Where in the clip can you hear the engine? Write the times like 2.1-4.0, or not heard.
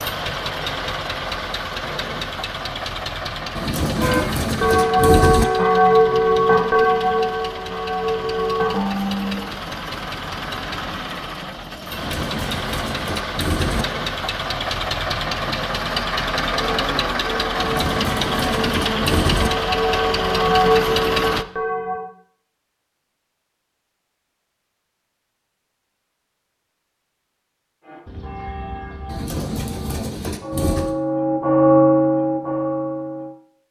0.0-21.4.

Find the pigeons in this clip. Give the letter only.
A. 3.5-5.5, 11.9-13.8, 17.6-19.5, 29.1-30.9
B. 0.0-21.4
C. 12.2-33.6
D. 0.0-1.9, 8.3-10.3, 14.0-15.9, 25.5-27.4
A.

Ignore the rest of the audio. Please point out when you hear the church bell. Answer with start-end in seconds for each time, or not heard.
4.0-9.4, 16.8-22.1, 27.8-33.4.